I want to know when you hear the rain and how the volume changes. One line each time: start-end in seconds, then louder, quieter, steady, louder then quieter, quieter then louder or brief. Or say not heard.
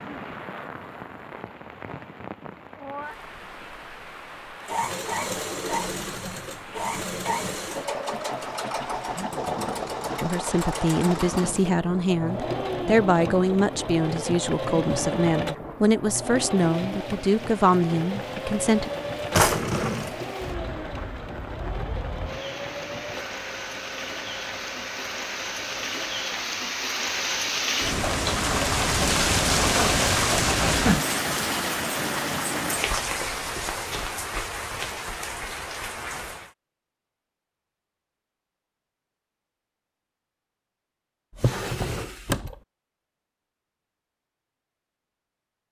0.0-36.5 louder.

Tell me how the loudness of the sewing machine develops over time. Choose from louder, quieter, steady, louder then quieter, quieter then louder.
quieter.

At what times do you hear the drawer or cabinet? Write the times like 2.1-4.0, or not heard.
19.3-20.1, 41.4-42.5.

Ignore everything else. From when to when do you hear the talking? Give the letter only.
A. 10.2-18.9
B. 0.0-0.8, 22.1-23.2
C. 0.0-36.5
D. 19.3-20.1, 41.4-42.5
A.